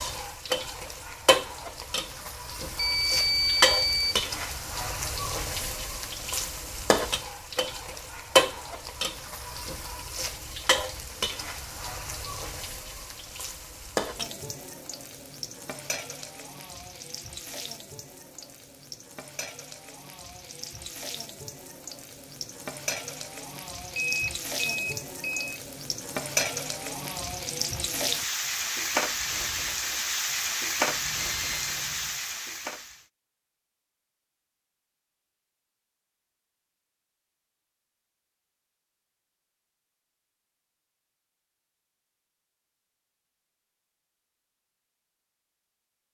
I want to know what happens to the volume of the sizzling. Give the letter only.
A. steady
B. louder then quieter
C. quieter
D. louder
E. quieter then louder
E.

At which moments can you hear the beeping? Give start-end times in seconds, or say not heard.
2.8-4.2, 23.9-25.5, 30.9-32.2.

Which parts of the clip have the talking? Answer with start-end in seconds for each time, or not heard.
not heard.